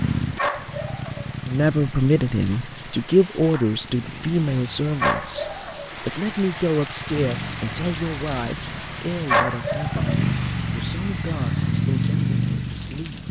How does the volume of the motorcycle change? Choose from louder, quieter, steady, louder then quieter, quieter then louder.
quieter then louder.